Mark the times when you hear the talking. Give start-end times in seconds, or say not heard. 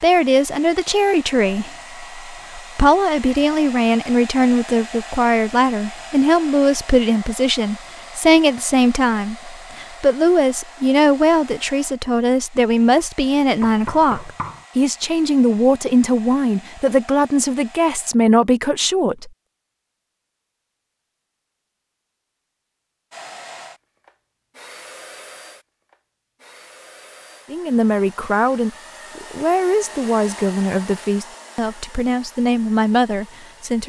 0.0-19.3, 27.5-33.8.